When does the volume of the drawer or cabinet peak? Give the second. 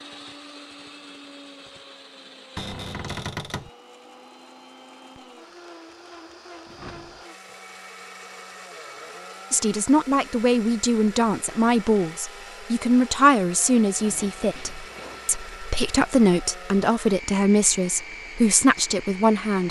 3 s.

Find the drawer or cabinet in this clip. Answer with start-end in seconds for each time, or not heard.
2.5-3.7, 6.7-7.2, 13.9-15.6.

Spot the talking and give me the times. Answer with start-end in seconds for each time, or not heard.
9.5-19.6.